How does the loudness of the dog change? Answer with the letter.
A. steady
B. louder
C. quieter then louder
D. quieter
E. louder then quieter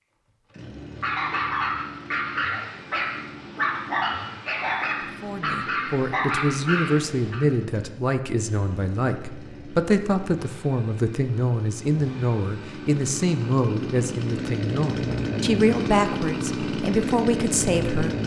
A.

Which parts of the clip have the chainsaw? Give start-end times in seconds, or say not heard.
0.2-18.2.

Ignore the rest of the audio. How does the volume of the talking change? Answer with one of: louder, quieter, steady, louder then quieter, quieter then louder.
steady.